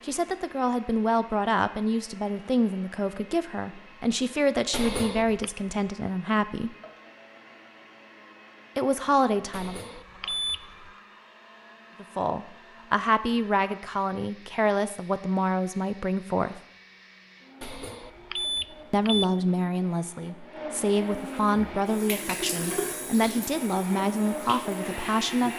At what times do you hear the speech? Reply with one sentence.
The speech can be heard from 0.1 to 6.8 s, from 8.8 to 9.8 s, from 12.0 to 16.6 s and from 18.9 to 25.5 s.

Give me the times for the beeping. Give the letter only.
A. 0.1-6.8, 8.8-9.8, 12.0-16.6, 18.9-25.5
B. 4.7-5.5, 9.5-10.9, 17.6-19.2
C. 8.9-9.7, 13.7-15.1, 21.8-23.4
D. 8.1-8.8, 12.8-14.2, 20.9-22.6
B.